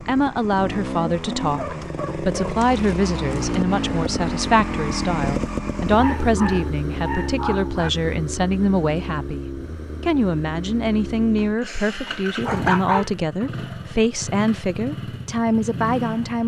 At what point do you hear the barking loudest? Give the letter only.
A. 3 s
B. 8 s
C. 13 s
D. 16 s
C.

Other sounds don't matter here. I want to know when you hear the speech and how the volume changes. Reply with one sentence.
You can hear the speech from 0.1 to 16.4 s, at a steady volume.